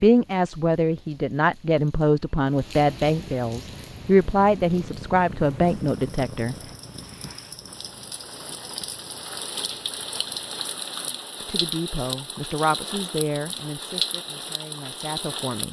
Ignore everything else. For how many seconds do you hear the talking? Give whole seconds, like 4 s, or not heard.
11 s.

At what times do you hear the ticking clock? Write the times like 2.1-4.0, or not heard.
not heard.